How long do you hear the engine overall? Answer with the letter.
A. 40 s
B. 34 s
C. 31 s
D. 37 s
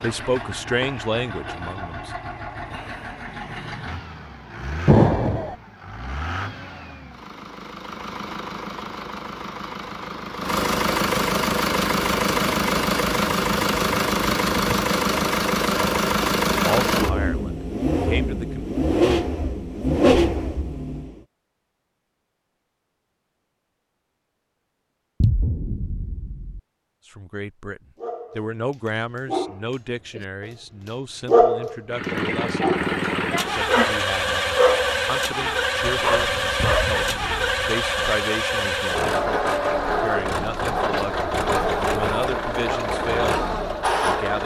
B.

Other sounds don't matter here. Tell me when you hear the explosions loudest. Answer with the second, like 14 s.
5 s.